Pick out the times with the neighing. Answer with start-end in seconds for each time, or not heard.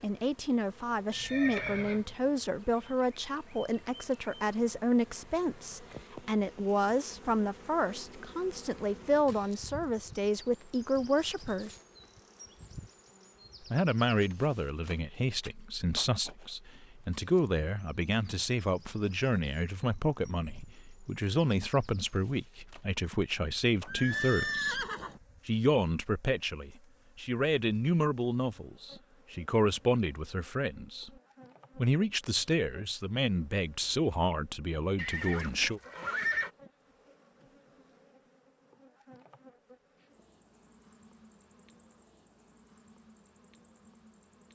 1.1-2.1, 23.9-25.2, 35.0-36.5.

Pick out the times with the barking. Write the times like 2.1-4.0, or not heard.
not heard.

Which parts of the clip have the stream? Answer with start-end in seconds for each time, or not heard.
not heard.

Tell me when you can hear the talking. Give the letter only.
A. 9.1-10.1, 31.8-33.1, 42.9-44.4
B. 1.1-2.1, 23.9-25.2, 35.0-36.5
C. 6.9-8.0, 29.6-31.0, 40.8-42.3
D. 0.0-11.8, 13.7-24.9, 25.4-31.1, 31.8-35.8
D.